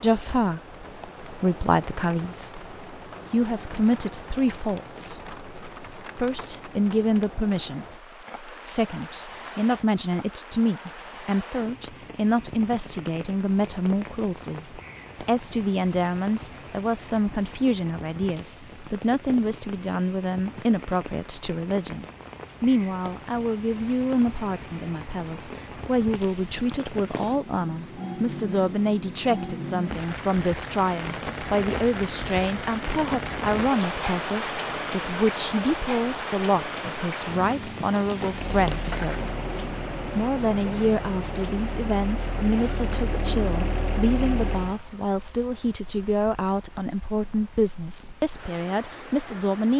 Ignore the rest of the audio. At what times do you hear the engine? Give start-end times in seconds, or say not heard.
38.2-44.8.